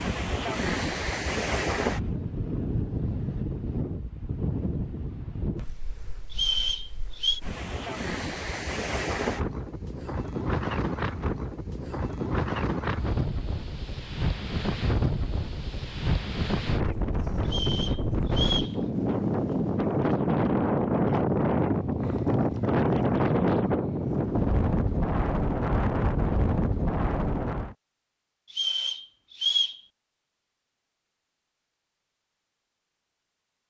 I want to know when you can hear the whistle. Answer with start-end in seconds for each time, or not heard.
6.3-7.4, 17.4-18.8, 28.5-29.8.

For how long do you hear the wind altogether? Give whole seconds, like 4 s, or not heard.
28 s.